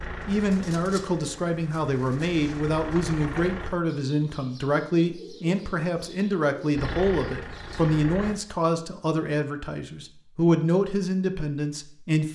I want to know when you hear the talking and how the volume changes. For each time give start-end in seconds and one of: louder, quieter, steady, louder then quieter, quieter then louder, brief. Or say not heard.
0.1-12.3 steady.